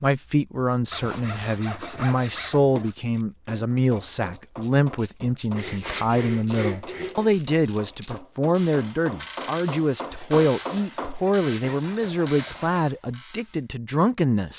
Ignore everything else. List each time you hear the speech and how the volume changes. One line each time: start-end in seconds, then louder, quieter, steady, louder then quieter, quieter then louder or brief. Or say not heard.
0.0-14.5 steady.